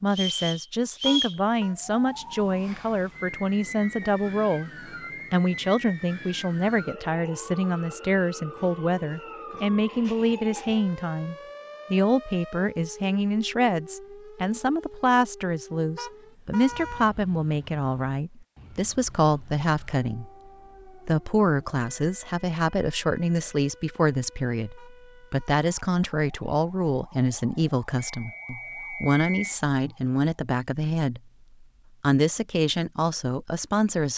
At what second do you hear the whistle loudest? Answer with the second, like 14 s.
1 s.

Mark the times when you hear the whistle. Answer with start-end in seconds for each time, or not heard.
0.1-1.4, 28.0-29.4.